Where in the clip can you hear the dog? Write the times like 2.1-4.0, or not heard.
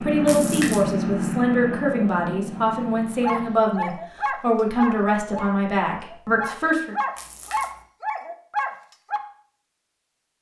3.2-9.2.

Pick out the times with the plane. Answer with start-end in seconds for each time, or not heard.
0.0-3.6.